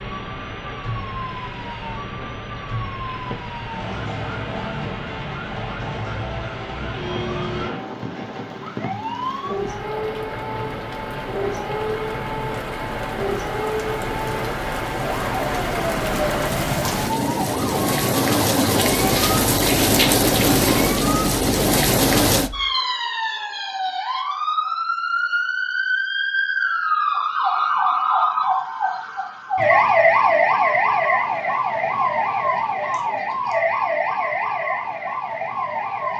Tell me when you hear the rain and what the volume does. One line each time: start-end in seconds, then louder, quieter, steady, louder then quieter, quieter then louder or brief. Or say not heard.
0.0-22.5 louder.